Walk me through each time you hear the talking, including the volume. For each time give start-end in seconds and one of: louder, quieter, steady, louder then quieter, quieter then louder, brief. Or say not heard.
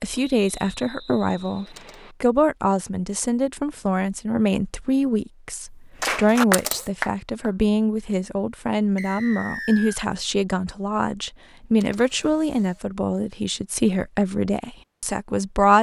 0.0-15.7 steady.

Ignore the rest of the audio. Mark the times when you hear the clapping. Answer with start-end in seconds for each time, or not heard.
6.0-7.5.